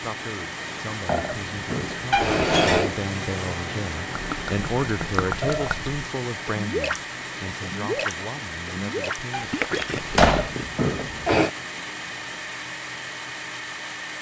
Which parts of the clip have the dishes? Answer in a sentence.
You can't hear the dishes here.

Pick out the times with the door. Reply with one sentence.
You can hear the door from 2.1 to 2.8 s and from 9.3 to 10.6 s.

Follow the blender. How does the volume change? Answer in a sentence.
The loudness of the blender stays about the same.